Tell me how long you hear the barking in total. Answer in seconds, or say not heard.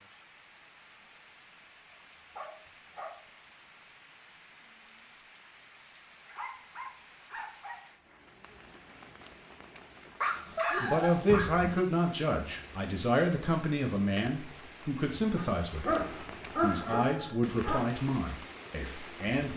7 s.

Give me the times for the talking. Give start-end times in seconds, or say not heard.
10.8-19.5.